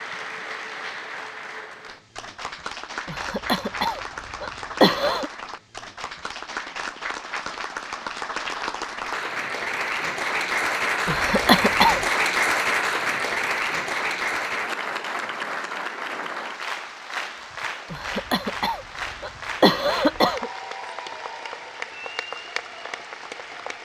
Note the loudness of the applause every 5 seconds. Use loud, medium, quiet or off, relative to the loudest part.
medium, medium, loud, medium, medium.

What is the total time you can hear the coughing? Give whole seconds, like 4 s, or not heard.
6 s.